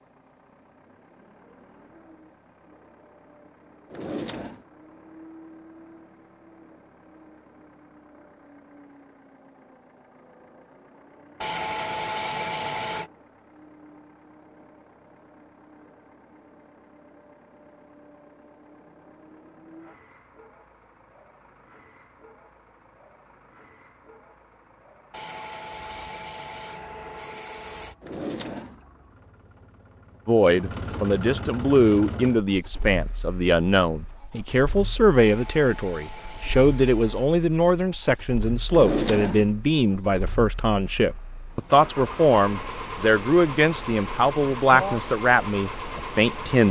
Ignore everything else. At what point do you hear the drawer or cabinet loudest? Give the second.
39 s.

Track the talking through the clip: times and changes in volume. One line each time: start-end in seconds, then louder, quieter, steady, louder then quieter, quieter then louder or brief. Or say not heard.
30.2-46.6 steady.